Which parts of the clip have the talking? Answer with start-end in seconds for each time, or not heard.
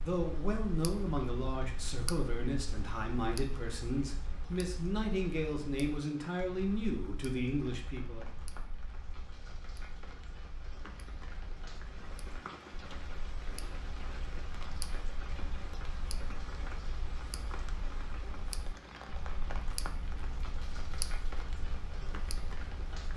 0.0-8.2.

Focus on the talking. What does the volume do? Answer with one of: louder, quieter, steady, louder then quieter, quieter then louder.
steady.